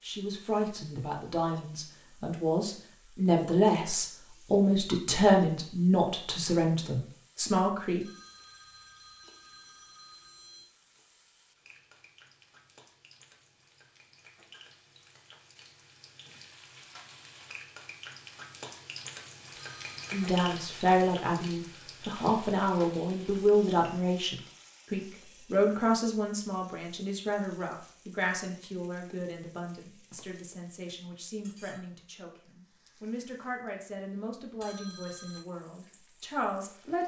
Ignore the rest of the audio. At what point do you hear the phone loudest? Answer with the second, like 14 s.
35 s.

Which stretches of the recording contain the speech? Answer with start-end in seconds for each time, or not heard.
0.0-8.1, 20.1-37.0.